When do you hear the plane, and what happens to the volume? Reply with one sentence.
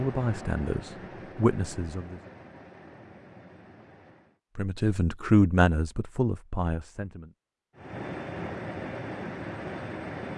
You can hear the plane from 0.0 to 4.4 s, getting quieter; and briefly from 7.8 to 10.3 s.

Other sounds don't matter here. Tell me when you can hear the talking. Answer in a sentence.
You can hear the talking from 0.0 to 2.2 s and from 4.5 to 7.3 s.